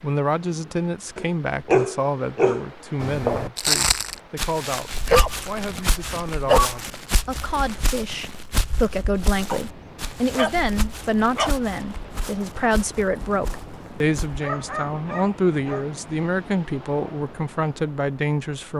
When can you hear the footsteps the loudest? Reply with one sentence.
The loudest moment of the footsteps is at 4 seconds.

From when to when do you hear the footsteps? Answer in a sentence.
You can hear the footsteps from 3.0 to 14.4 s.